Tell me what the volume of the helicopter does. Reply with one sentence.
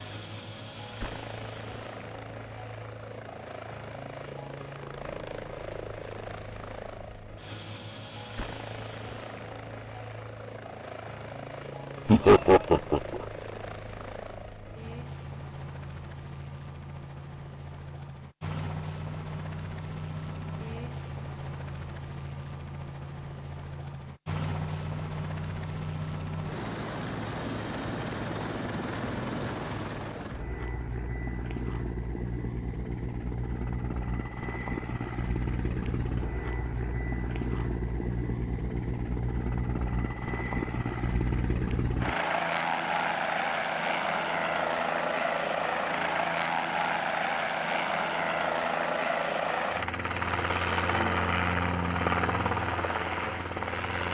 The loudness of the helicopter goes up.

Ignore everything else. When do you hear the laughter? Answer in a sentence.
You can hear the laughter from 12.1 to 13.2 s.